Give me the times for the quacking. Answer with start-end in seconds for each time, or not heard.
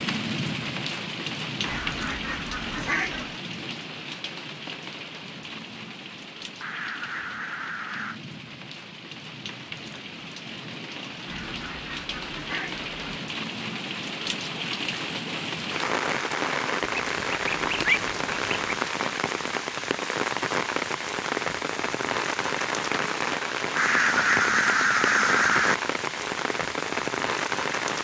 1.6-3.4, 6.6-8.2, 11.2-13.2, 16.8-18.8, 23.8-25.8.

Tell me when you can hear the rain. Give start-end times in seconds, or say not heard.
0.0-27.9.